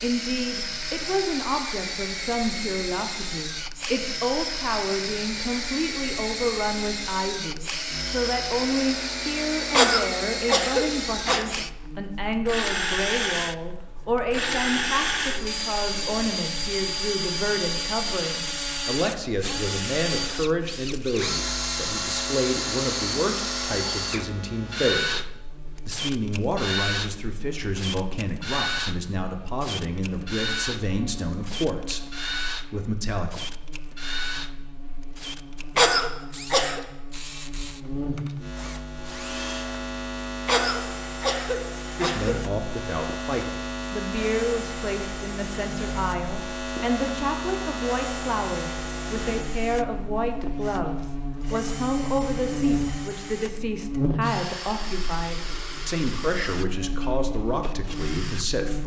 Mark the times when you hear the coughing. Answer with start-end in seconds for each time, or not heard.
9.7-11.4, 35.8-36.8, 40.5-42.4.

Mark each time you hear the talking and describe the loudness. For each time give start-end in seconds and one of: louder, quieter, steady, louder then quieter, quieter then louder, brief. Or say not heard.
0.0-33.4 steady
42.0-58.8 steady.